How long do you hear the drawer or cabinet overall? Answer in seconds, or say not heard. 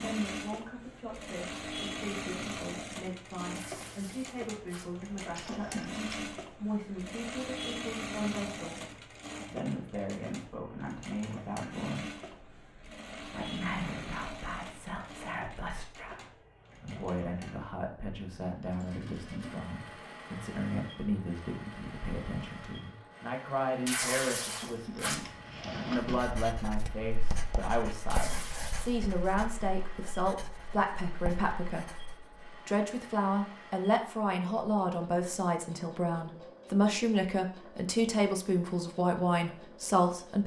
3 s.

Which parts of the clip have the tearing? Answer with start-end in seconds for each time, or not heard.
3.5-4.9, 23.9-25.2, 28.1-29.0.